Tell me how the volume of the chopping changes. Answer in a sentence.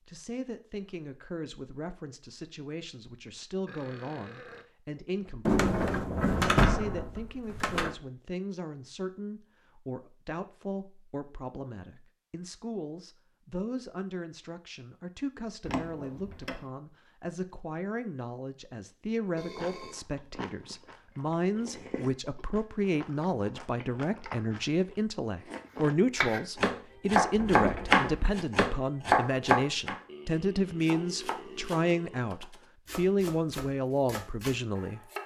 The loudness of the chopping goes down.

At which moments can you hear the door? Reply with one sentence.
The door can be heard from 5.5 to 8.0 s, from 15.6 to 16.6 s and from 27.3 to 28.4 s.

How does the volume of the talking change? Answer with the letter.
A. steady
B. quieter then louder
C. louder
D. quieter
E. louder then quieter
C.